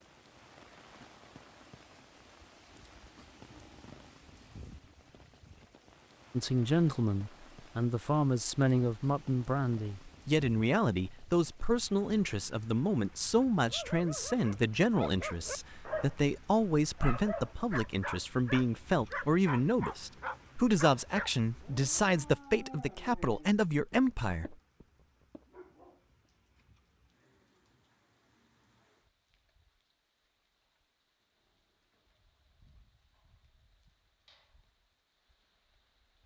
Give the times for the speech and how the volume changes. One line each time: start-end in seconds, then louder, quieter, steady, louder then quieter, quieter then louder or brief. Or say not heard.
6.3-24.6 steady.